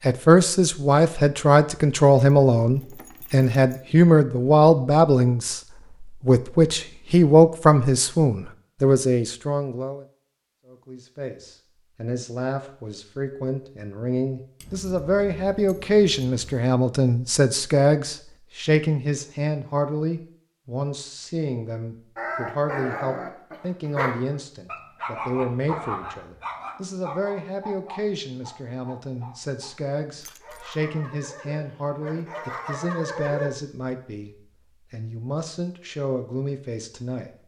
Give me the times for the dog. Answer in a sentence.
You can hear the dog from 22.1 to 33.5 s.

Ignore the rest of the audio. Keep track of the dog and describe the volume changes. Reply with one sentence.
The loudness of the dog goes down, then up.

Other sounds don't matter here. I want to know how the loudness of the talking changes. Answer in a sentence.
The volume of the talking goes down.